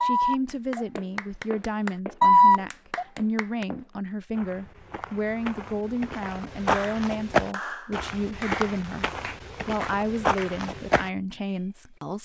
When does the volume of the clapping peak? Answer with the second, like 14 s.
2 s.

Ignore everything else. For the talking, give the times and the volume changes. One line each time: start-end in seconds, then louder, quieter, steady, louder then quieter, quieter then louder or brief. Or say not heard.
0.0-12.2 steady.